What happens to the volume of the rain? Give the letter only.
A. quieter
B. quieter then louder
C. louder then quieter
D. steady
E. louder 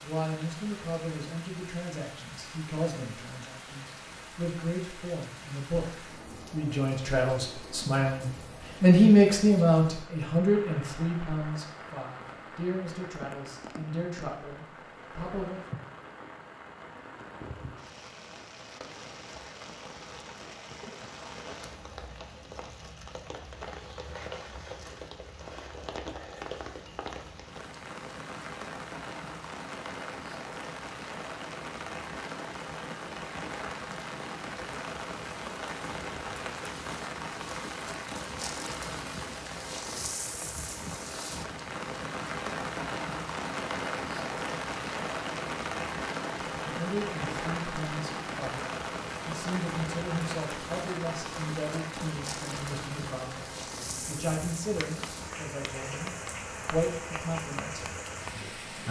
E.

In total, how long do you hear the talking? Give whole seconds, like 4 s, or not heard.
28 s.